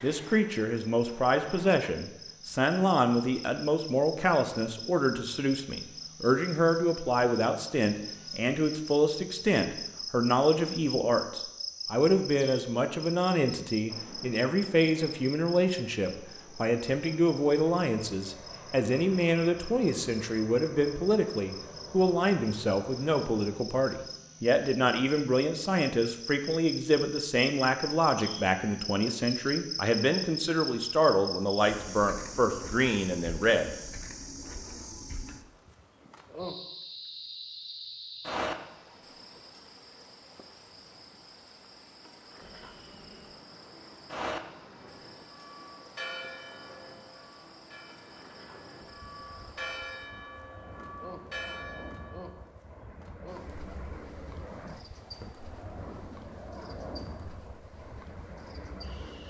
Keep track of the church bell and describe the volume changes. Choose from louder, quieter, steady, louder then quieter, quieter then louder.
quieter then louder.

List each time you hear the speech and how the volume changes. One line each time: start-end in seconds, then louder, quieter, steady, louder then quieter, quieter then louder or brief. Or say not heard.
0.0-33.7 steady.